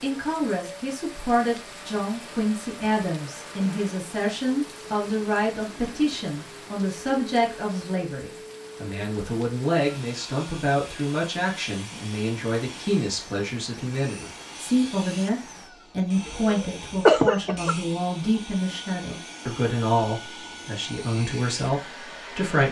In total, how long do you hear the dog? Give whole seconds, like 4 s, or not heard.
not heard.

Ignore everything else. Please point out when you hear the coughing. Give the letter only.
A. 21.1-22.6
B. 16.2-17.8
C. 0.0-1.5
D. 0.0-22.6
B.